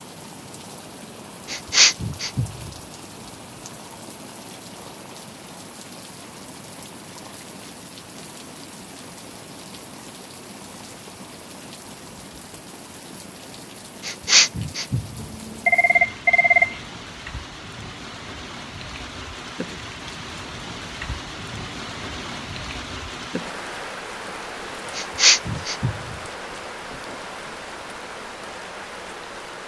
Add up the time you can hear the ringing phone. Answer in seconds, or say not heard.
2 s.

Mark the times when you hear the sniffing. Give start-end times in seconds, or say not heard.
1.5-2.7, 14.1-15.2, 24.9-26.1.